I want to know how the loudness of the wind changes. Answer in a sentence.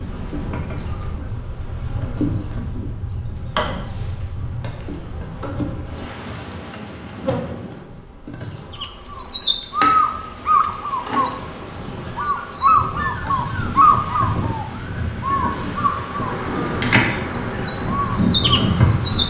The volume of the wind goes down, then up.